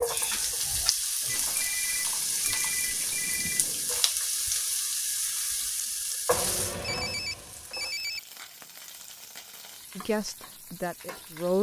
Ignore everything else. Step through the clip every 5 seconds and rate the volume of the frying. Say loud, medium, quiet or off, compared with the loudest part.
loud, medium, quiet.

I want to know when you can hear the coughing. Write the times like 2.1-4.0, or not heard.
not heard.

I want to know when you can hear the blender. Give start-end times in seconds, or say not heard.
not heard.